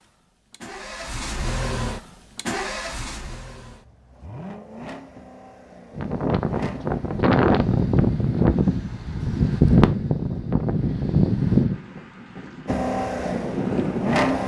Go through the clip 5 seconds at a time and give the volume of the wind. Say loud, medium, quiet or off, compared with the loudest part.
off, loud, loud.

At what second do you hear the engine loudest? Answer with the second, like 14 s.
14 s.